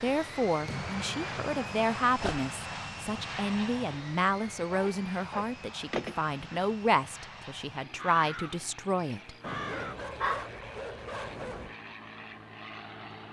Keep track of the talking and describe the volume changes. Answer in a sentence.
The volume of the talking stays about the same.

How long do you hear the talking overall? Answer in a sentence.
You can hear the talking for 9 seconds altogether.